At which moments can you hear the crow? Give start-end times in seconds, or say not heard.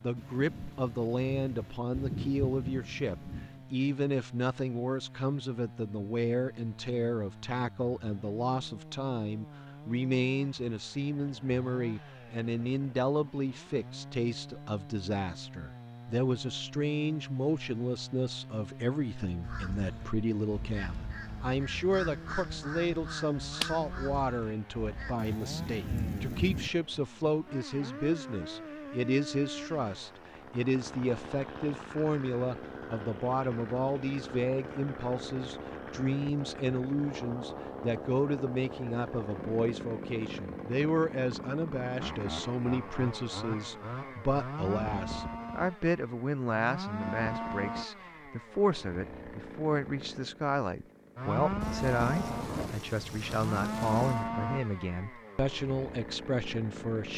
19.4-25.1.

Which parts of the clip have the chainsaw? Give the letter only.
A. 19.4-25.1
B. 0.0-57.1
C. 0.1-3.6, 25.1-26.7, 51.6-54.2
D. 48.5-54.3
B.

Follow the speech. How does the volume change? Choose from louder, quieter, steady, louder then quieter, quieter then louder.
steady.